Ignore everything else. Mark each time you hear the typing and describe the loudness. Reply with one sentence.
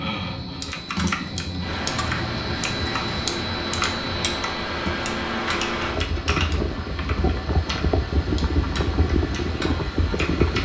You can hear the typing from 0.0 to 10.5 s, getting quieter.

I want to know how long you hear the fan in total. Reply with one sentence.
You can hear the fan for 9 seconds altogether.